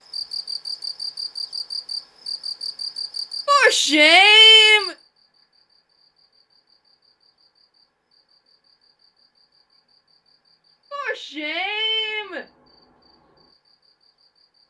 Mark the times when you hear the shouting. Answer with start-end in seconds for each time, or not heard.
3.5-5.0, 10.9-12.4.